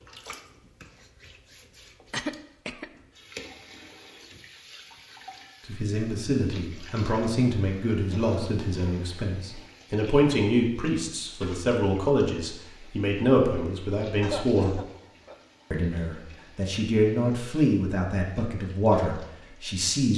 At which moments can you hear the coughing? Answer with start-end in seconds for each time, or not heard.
2.1-2.9, 8.1-9.2, 14.2-15.3.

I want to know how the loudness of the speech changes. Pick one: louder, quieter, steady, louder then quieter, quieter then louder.
steady.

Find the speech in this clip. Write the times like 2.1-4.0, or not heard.
5.7-14.8, 15.7-20.1.